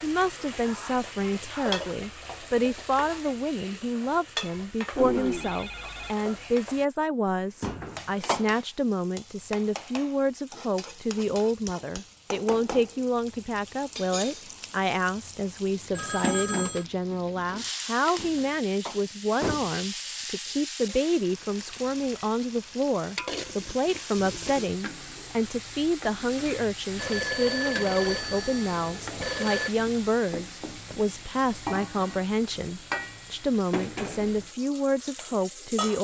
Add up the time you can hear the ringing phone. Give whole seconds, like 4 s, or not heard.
5 s.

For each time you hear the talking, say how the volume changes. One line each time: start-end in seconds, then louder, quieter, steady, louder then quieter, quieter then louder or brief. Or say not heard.
0.0-36.0 steady.